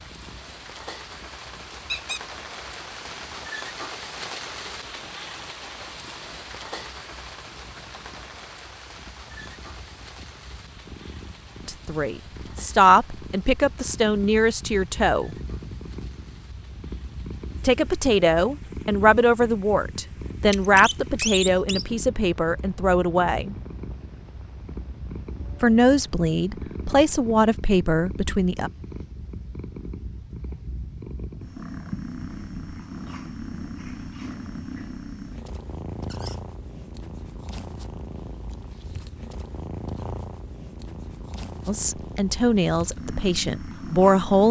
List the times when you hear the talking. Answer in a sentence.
The talking can be heard from 11.7 to 15.3 s, from 17.6 to 23.6 s, from 25.6 to 28.7 s and from 41.6 to 44.4 s.